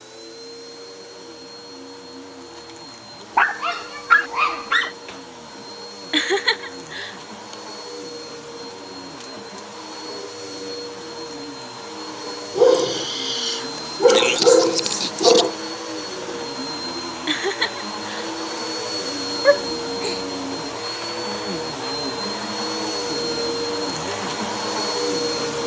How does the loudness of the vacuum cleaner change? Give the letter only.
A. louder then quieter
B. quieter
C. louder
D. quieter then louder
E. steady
C.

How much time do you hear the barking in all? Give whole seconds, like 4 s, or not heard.
5 s.